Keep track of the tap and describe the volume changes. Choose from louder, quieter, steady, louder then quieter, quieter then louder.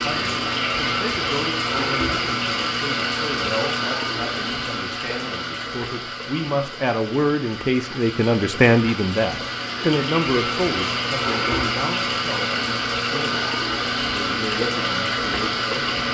quieter then louder.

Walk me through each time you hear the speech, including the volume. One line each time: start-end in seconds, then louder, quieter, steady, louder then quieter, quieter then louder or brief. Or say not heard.
0.1-16.0 louder then quieter.